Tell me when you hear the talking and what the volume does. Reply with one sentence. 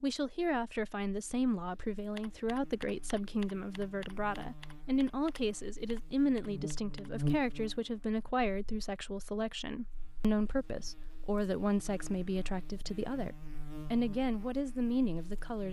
You can hear the talking from 0.0 to 15.6 s, at a steady volume.